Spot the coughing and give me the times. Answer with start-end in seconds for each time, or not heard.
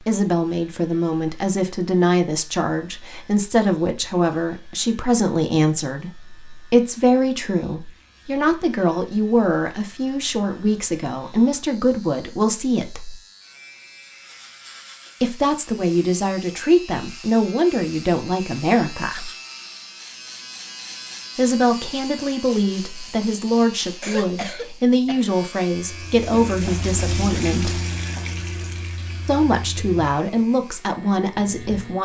24.0-25.4.